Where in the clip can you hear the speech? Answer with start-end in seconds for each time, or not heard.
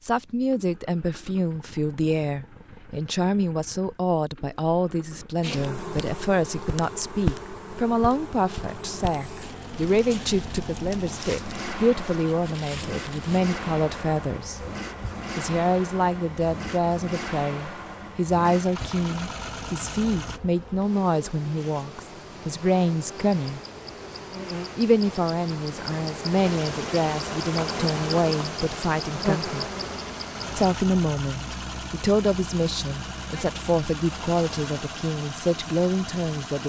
0.1-14.7, 15.3-23.6, 24.8-29.7, 30.6-36.6.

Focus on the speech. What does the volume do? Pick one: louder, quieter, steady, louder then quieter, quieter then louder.
steady.